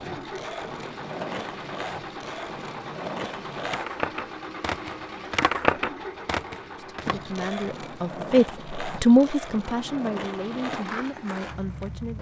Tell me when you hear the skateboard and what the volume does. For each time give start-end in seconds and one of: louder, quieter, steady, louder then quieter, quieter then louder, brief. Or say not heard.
0.0-12.1 louder then quieter.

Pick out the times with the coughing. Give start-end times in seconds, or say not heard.
not heard.